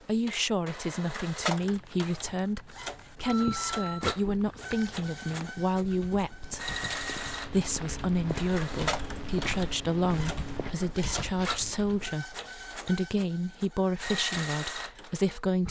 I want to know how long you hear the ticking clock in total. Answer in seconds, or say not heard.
not heard.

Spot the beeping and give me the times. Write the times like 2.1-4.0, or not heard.
3.2-4.1.